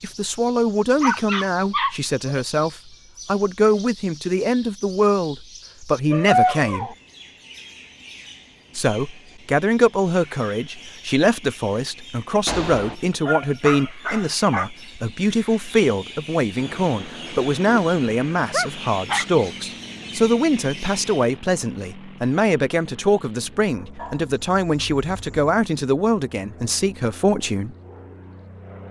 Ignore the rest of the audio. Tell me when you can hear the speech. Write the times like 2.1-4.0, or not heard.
0.0-7.0, 8.8-27.8.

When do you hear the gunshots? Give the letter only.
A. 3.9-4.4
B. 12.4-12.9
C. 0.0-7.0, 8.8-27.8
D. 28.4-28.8
B.